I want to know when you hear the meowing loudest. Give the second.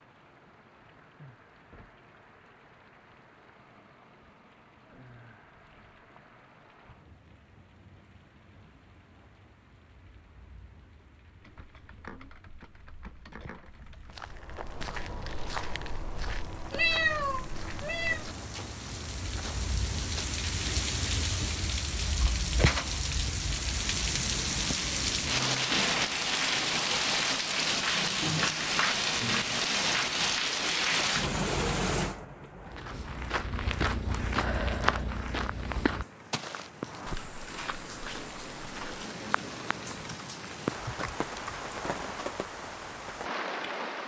17 s.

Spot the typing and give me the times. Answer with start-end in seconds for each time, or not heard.
11.4-14.2, 40.0-41.7.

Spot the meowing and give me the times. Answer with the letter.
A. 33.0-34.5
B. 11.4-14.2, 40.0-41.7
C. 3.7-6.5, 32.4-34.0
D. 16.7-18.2
D.